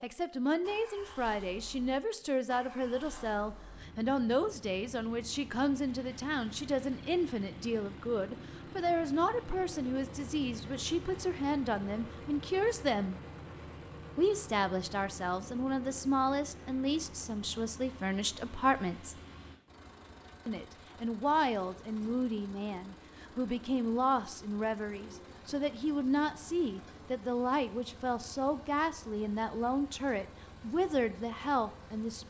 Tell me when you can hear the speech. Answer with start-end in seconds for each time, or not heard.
0.0-13.2, 14.2-19.1, 20.4-32.2.